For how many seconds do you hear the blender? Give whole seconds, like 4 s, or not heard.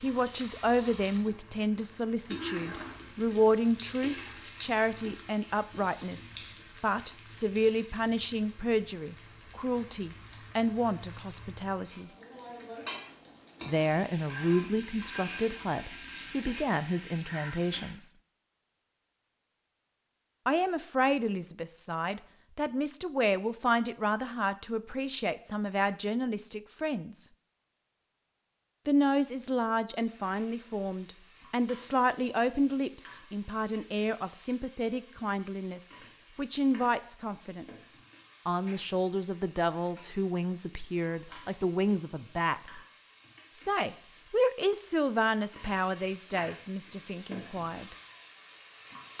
not heard.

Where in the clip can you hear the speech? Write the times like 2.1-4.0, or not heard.
0.0-12.1, 13.7-18.1, 20.4-27.2, 28.9-42.8, 43.5-48.0.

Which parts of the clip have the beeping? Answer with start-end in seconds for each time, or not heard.
not heard.